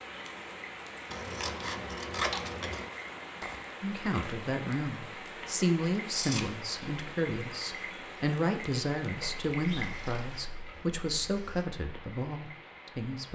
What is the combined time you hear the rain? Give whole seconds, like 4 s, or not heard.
13 s.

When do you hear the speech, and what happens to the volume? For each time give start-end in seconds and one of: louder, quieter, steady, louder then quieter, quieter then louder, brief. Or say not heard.
3.8-13.2 steady.